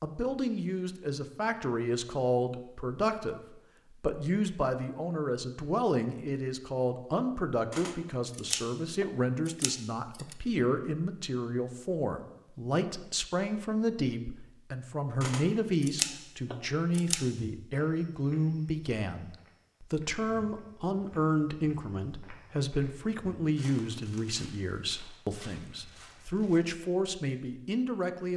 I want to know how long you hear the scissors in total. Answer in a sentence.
The scissors can be heard for 5 seconds in total.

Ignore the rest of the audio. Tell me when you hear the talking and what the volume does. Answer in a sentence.
You can hear the talking from 0.0 to 28.3 s, at a steady volume.